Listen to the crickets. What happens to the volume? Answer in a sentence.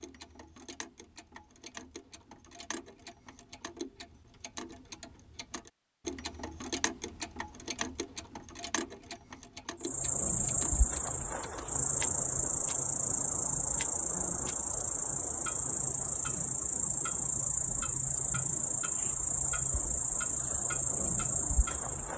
The loudness of the crickets stays about the same.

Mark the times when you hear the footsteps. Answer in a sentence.
You can't hear the footsteps here.